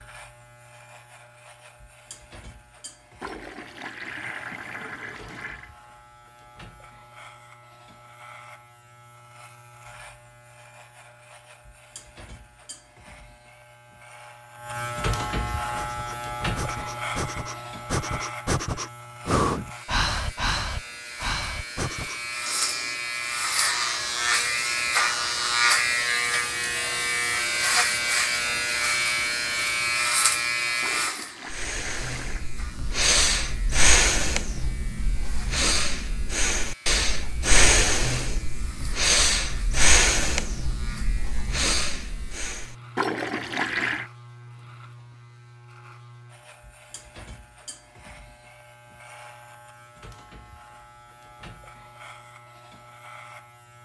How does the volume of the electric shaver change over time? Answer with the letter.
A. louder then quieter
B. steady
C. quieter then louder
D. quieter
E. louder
A.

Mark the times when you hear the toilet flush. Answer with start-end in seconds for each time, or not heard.
3.2-5.7, 30.8-32.5, 43.0-44.1.